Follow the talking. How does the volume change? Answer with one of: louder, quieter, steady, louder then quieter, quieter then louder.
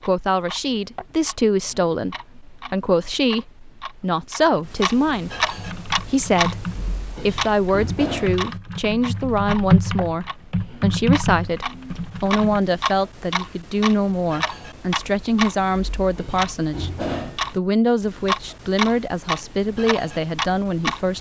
steady.